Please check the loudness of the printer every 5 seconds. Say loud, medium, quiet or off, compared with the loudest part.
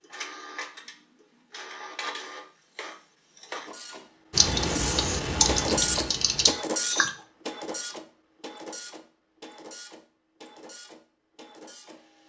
medium, loud, quiet.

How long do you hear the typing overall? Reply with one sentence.
The typing can be heard for 3 seconds in total.